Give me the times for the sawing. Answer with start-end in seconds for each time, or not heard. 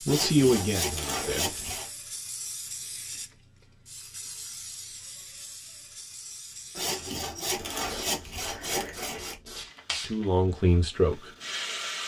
0.1-1.9, 6.8-9.3.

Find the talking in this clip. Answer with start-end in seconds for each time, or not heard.
0.1-1.5, 9.9-11.3.